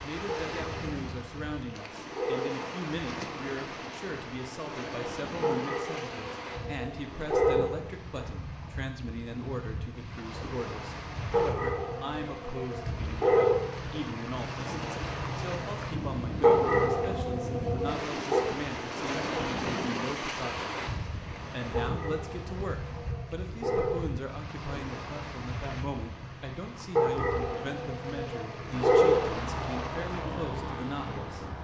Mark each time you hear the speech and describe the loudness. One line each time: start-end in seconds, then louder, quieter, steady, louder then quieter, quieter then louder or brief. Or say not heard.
0.0-20.7 steady
21.5-31.5 steady.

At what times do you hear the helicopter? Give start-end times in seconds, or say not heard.
28.6-31.5.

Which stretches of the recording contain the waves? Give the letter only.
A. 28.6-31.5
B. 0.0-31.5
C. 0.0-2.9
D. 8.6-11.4
B.